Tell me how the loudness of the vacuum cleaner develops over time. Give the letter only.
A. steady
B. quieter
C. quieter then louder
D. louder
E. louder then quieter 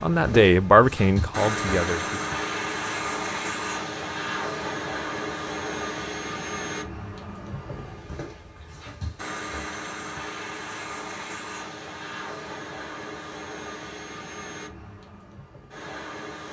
B.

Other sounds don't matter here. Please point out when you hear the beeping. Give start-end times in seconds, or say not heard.
not heard.